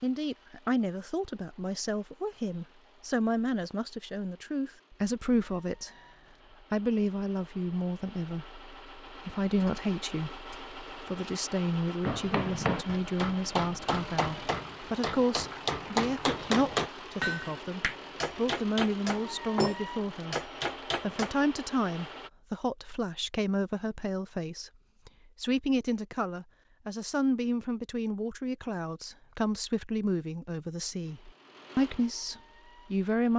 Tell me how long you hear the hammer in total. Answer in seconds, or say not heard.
9 s.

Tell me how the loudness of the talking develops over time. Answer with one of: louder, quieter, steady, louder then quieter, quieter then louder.
steady.